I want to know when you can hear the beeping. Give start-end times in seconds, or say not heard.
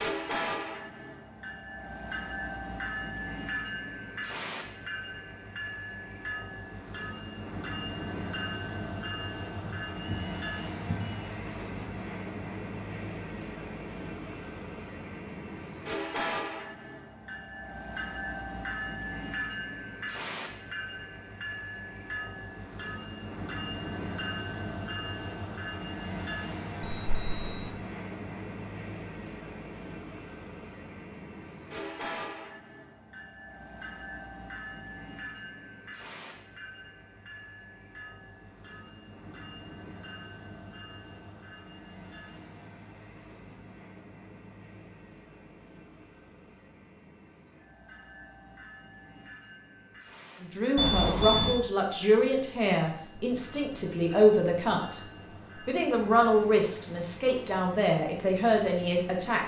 9.6-11.2, 26.8-27.8, 50.8-51.6.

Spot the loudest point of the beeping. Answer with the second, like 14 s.
51 s.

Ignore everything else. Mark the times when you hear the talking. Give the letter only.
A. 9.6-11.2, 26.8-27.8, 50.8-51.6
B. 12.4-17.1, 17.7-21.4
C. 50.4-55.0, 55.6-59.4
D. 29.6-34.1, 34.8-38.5
C.